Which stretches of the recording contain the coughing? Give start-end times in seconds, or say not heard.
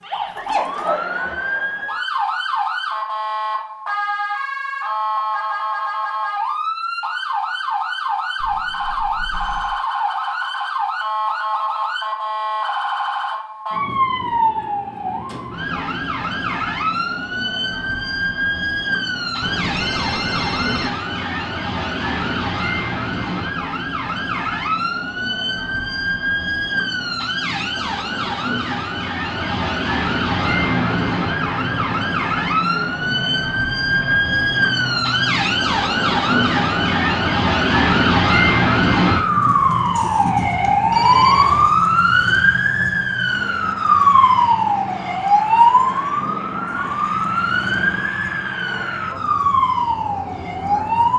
not heard.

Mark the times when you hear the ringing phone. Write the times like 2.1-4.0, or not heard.
8.4-9.8, 19.4-20.9, 40.9-41.8.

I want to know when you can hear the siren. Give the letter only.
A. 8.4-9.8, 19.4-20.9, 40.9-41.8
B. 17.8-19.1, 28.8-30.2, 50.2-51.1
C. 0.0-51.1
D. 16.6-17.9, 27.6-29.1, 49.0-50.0
C.